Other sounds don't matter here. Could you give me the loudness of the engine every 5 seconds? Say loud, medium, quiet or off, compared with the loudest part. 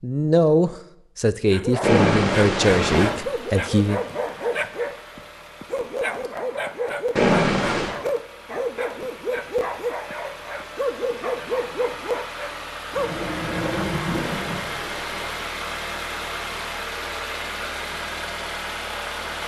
medium, quiet, loud, loud.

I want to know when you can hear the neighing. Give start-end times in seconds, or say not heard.
1.8-3.1, 7.2-8.0, 14.2-15.3.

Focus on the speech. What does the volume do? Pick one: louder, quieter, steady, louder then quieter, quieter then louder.
quieter.